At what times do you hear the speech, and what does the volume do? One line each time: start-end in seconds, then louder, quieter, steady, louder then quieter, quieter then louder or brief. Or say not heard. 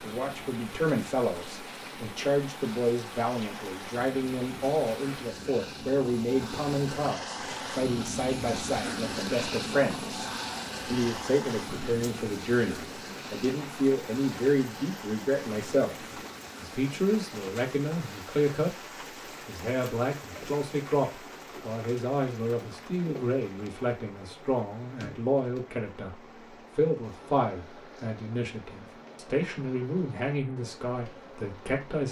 0.0-18.8 steady
19.4-32.0 steady.